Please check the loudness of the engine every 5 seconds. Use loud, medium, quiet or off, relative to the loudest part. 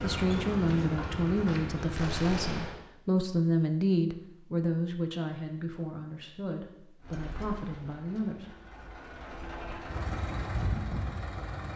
loud, medium, loud.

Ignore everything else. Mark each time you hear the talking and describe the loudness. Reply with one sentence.
You can hear the talking from 0.0 to 8.6 s, getting quieter.